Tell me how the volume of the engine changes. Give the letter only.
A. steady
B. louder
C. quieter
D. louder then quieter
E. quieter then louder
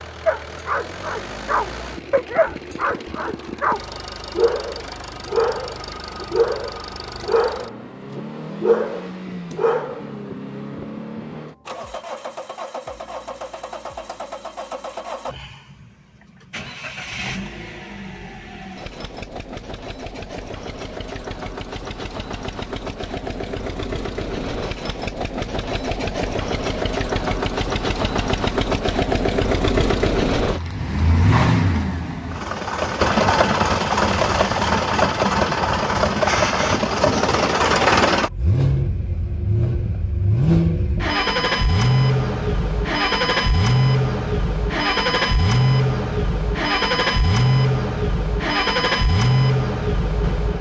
B.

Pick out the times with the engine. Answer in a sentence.
You can hear the engine from 0.0 to 50.5 s.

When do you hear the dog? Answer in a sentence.
You can hear the dog from 0.2 to 10.1 s.